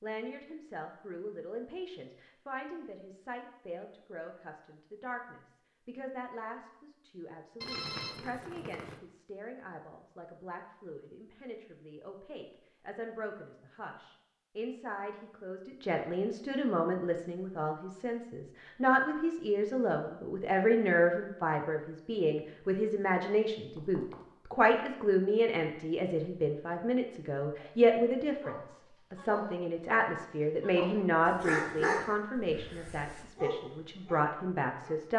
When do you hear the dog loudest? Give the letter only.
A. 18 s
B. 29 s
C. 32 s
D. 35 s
C.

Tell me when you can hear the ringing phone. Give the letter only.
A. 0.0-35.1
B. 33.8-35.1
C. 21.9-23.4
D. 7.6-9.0
D.